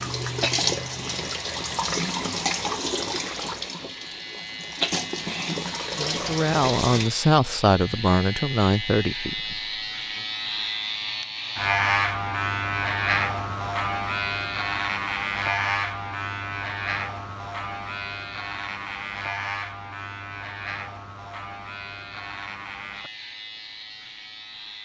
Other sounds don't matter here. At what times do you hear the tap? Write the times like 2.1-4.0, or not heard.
0.0-7.1.